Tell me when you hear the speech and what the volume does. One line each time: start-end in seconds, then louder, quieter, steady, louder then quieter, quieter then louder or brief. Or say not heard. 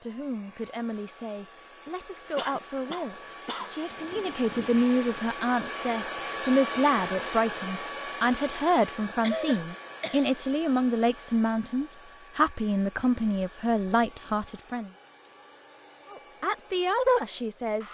0.0-14.9 louder
16.1-17.8 brief.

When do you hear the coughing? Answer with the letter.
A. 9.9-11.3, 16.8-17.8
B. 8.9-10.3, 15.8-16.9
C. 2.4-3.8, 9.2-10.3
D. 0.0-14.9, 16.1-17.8
C.